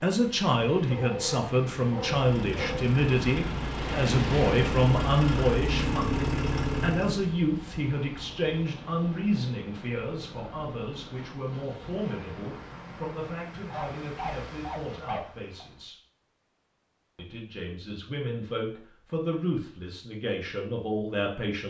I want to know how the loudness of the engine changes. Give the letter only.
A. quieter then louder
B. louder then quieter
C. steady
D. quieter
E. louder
E.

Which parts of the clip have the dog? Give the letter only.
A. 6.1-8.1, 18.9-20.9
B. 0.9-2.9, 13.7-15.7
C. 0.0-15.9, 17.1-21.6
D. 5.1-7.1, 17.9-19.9
B.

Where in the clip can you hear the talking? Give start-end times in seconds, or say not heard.
0.0-15.9, 17.1-21.6.